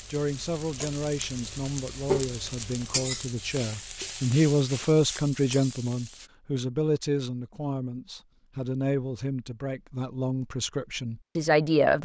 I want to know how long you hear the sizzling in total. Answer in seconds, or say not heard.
6 s.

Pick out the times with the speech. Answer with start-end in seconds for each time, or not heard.
0.1-12.0.